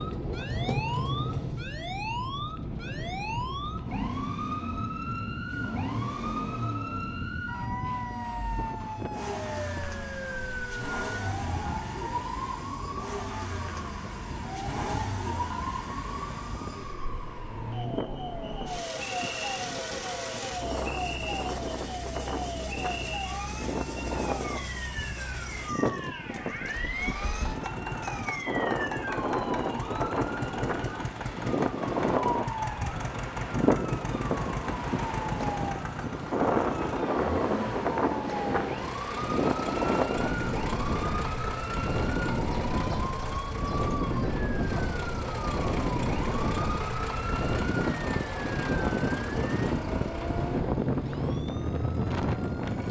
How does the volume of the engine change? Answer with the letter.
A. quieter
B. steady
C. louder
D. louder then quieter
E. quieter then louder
B.